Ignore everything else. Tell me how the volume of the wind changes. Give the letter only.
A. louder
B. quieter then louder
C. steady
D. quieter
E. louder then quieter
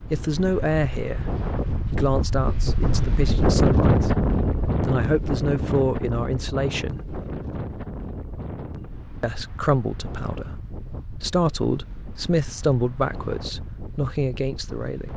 E.